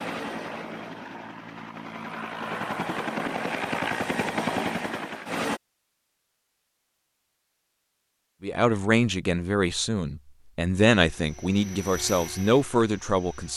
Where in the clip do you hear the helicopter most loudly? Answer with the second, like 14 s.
4 s.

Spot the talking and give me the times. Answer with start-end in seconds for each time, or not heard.
8.4-13.5.